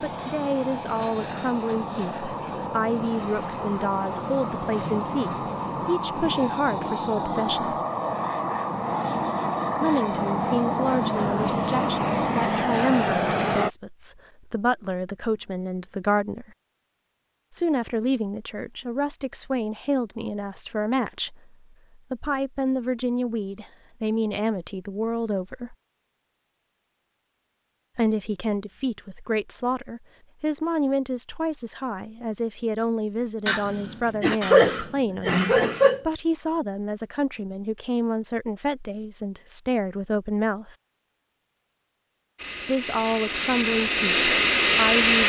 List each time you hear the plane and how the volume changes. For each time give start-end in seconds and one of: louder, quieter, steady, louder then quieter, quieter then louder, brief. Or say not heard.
0.0-13.7 louder
42.4-45.2 brief.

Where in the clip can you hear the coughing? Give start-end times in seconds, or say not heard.
33.5-36.0.